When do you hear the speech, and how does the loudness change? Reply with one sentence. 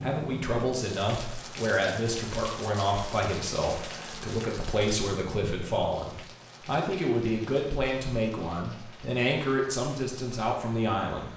You can hear the speech from 0.0 to 11.3 s, at a steady volume.